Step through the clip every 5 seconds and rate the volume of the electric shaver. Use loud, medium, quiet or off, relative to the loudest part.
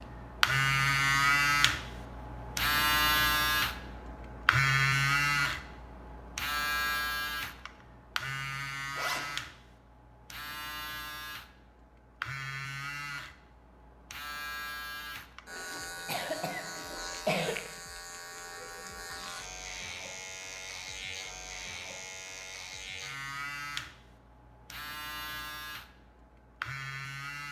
loud, medium, quiet, quiet, quiet, quiet.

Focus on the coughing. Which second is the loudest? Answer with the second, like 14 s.
17 s.